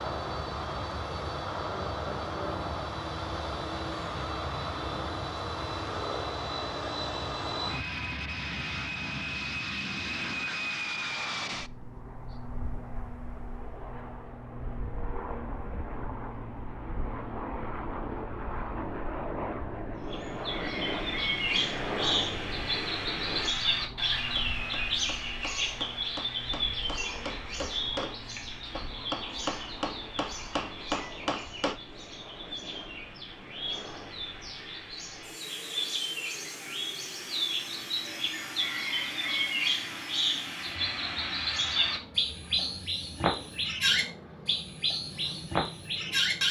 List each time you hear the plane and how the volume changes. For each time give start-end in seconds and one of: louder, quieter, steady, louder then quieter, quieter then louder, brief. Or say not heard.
0.0-46.4 quieter.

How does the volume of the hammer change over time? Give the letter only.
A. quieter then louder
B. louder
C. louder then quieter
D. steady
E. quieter
B.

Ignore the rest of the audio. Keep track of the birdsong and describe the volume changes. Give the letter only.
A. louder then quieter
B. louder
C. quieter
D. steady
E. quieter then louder
E.